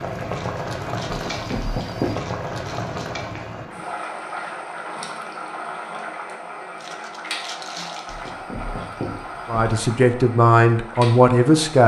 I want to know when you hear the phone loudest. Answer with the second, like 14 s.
2 s.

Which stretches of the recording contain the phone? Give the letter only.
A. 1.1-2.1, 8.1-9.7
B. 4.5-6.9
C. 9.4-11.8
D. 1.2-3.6
A.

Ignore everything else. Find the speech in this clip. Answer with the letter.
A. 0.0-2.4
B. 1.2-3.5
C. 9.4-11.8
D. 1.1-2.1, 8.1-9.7
C.